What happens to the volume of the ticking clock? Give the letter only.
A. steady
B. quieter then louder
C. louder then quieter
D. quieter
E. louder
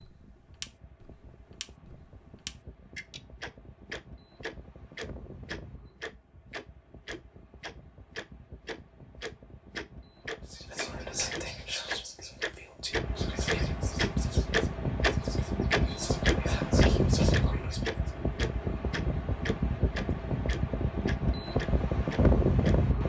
C.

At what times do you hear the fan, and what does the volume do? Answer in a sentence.
The fan can be heard from 0.0 to 23.0 s, getting louder.